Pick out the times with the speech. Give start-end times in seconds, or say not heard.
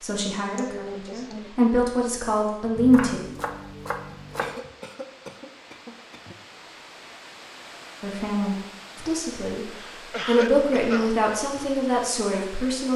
0.0-3.2, 8.0-9.7, 10.2-12.9.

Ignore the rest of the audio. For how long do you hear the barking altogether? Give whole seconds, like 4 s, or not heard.
not heard.